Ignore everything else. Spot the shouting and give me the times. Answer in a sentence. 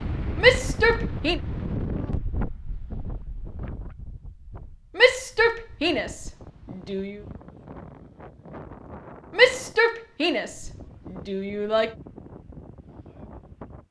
You can hear the shouting from 0.3 to 1.4 s, from 5.0 to 7.2 s and from 9.3 to 11.9 s.